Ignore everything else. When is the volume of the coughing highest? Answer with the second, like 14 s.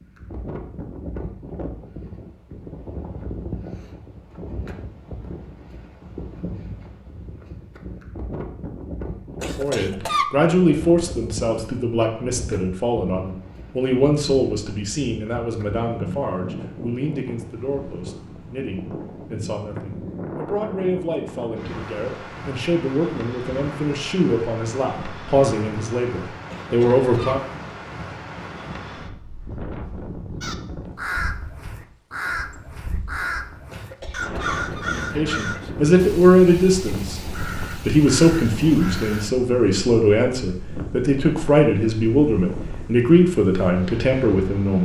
10 s.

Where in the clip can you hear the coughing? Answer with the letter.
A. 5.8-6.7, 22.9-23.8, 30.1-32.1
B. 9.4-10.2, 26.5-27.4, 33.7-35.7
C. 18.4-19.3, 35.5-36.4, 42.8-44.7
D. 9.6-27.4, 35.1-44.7
B.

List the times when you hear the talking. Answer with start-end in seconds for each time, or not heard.
9.6-27.4, 35.1-44.7.